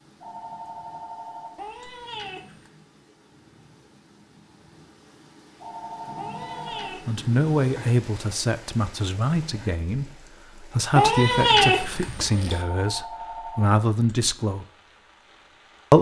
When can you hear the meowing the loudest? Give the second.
12 s.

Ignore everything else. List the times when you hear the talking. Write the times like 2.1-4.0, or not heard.
7.0-14.7.